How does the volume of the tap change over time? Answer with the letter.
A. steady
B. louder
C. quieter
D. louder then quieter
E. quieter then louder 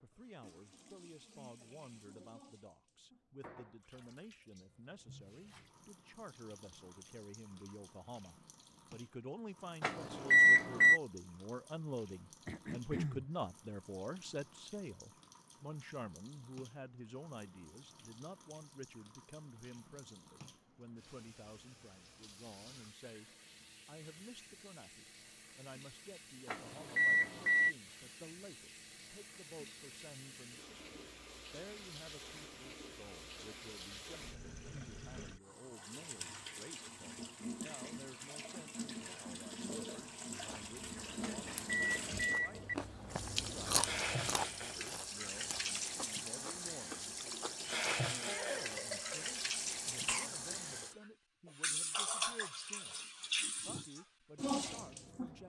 B.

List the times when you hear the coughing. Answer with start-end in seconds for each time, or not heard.
12.4-13.2, 48.2-50.3.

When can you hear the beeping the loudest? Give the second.
10 s.